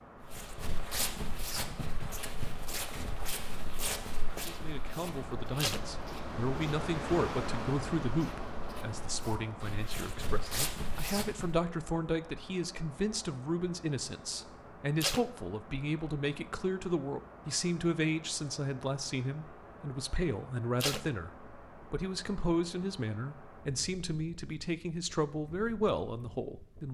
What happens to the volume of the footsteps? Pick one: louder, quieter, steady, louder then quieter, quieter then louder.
quieter then louder.